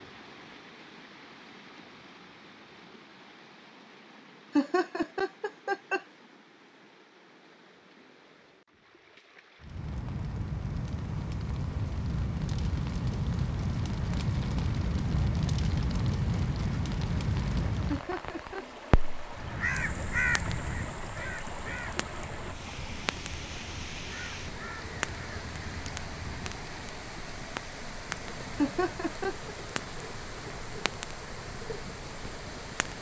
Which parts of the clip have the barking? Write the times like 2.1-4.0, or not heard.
not heard.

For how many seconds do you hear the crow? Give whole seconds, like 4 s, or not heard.
7 s.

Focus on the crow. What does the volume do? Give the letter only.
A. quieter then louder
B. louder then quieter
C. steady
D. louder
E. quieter
E.